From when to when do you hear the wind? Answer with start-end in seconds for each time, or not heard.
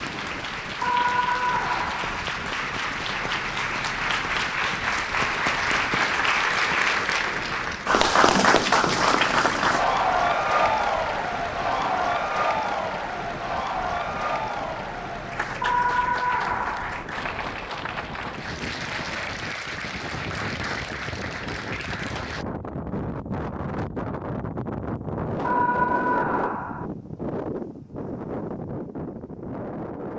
0.0-30.1.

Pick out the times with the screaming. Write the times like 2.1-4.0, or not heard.
0.8-2.2, 15.6-17.1, 25.4-26.9.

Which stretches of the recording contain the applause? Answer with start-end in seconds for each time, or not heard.
0.0-22.4.